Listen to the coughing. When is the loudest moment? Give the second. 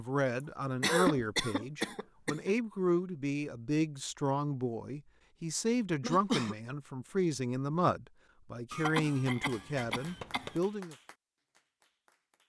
1 s.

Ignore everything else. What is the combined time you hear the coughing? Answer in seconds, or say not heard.
4 s.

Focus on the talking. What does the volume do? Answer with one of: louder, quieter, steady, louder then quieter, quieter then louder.
steady.